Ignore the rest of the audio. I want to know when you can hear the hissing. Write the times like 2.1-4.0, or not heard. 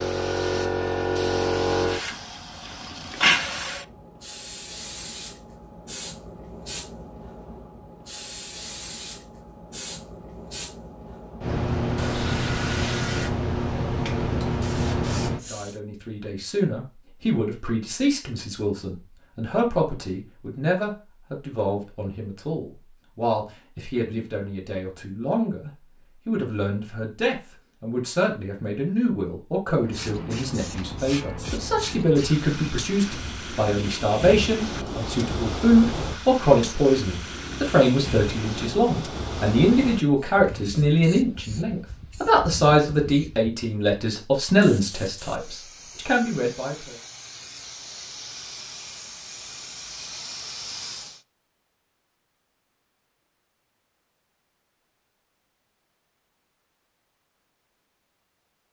0.0-15.8, 29.8-51.2.